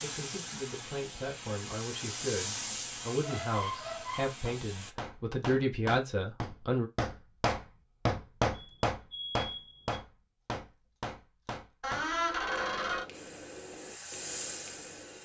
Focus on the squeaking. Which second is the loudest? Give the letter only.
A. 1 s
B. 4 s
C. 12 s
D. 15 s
C.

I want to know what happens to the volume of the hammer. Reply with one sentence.
The loudness of the hammer goes up, then down.